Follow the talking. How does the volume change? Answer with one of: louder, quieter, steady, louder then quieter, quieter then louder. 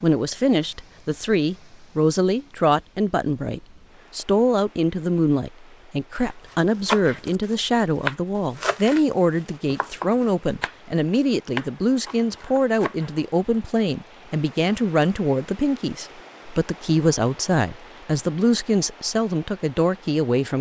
steady.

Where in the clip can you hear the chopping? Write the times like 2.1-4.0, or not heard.
6.2-9.1, 9.7-13.2.